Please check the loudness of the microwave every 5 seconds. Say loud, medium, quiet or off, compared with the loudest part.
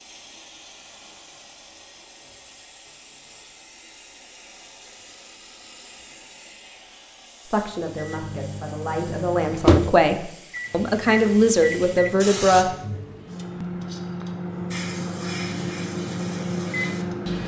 off, loud, medium, loud.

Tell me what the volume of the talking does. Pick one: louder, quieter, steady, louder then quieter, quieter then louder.
louder.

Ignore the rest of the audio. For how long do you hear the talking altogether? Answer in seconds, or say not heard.
5 s.